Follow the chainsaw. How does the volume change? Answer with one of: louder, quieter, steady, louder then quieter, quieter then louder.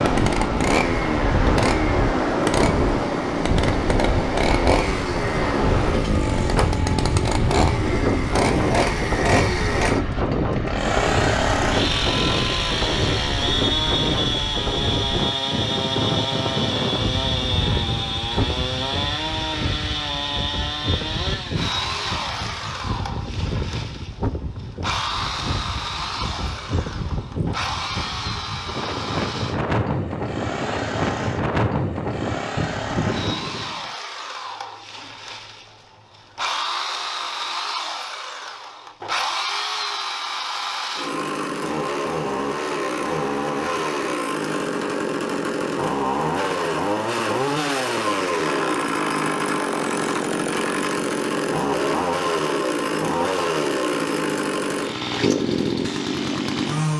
quieter then louder.